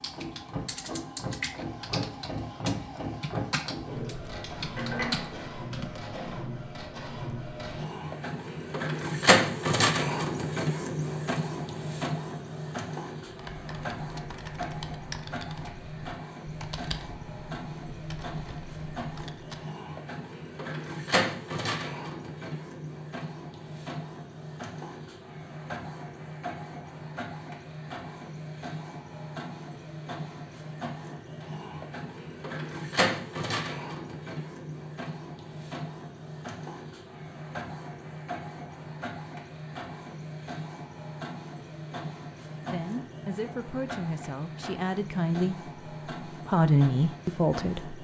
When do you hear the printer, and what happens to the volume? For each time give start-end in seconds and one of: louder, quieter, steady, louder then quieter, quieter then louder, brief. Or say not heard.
0.0-48.0 quieter.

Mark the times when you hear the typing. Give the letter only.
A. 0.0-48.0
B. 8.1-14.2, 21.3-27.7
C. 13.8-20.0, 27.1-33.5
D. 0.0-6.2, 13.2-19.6
D.